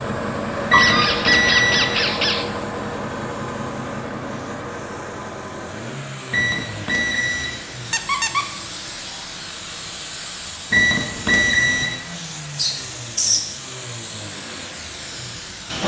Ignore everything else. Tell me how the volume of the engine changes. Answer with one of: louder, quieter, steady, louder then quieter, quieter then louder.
quieter.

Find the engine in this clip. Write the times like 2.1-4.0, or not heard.
0.0-15.8.